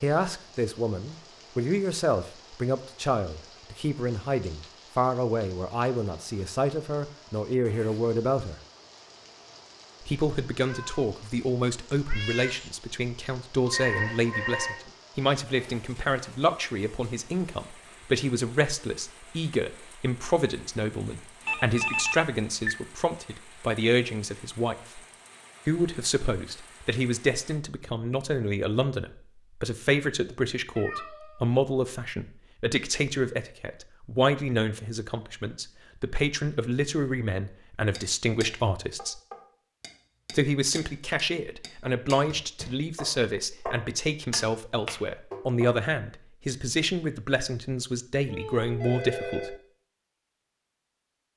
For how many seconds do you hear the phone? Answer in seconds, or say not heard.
3 s.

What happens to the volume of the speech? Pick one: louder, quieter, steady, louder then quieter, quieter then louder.
steady.